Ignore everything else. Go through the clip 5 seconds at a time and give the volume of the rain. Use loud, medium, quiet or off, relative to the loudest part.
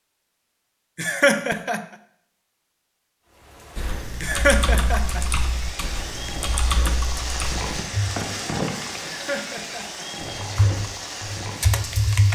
medium, loud, loud.